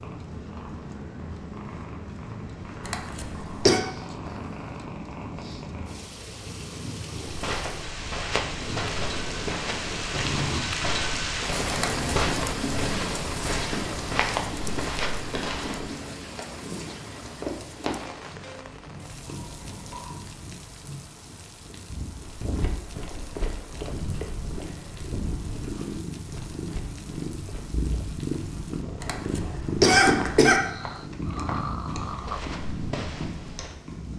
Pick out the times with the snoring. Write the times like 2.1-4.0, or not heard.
3.3-4.8, 8.6-10.6, 19.2-20.3, 30.6-32.4.